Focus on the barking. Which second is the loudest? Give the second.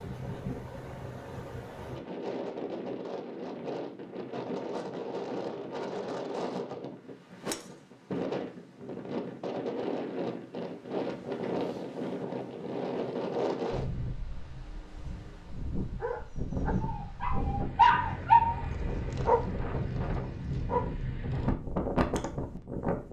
18 s.